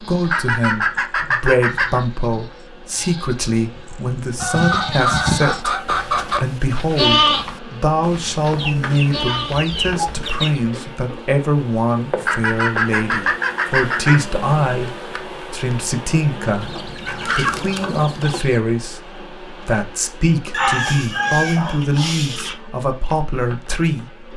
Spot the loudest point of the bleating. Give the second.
7 s.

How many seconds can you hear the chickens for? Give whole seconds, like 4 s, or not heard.
12 s.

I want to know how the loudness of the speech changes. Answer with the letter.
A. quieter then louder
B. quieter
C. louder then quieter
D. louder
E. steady
E.